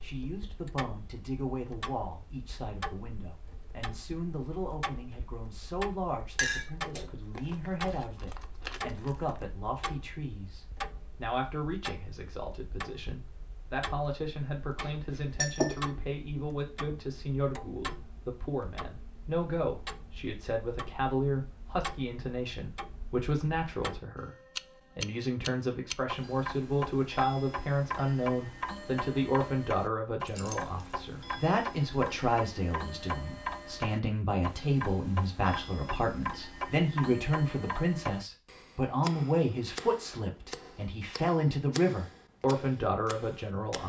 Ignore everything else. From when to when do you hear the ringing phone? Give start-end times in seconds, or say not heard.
not heard.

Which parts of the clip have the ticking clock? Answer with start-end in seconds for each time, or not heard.
0.0-43.8.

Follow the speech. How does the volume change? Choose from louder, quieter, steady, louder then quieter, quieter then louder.
louder.